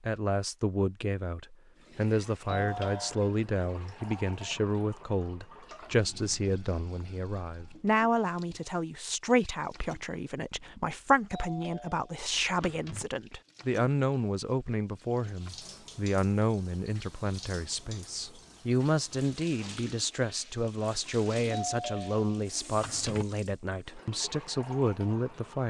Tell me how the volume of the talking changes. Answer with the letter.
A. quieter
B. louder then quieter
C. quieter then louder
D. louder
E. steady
E.